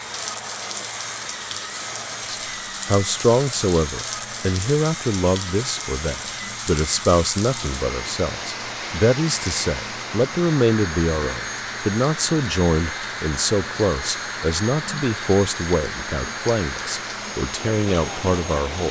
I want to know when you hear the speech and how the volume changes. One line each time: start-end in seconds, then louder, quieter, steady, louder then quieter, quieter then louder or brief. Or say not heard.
2.2-18.8 steady.